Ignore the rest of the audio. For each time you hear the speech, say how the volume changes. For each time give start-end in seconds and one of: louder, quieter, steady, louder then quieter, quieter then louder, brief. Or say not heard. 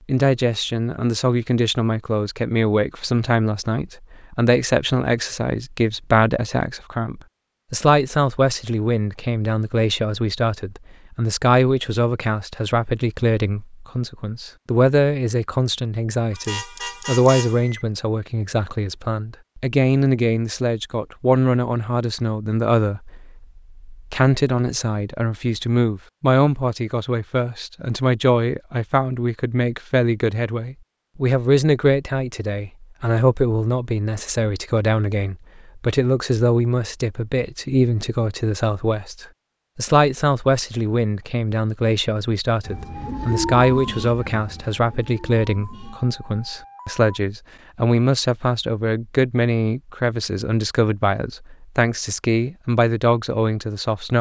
0.1-54.1 steady.